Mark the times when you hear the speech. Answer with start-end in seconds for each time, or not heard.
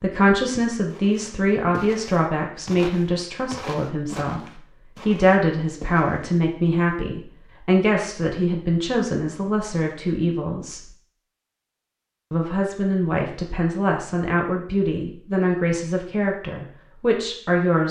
0.0-10.8, 12.3-17.8.